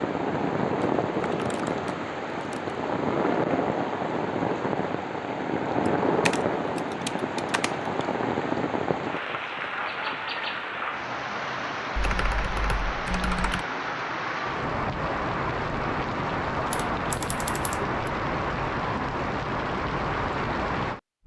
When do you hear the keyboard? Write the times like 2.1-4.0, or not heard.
0.8-2.8, 5.8-7.9, 11.9-13.7, 16.5-17.9.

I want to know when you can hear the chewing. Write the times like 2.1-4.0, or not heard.
not heard.